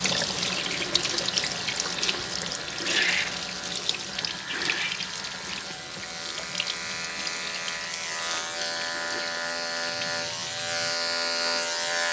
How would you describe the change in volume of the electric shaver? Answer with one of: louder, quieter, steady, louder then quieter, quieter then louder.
louder.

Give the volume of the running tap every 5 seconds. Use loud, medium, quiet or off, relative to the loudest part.
loud, medium, quiet.